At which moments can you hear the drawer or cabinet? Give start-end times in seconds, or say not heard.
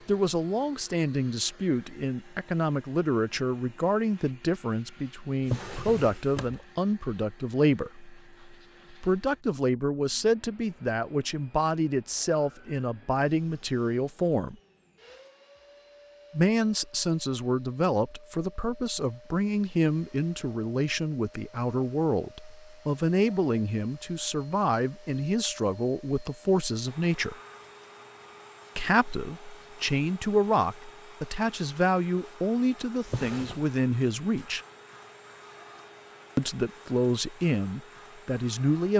5.4-6.7, 33.0-33.6.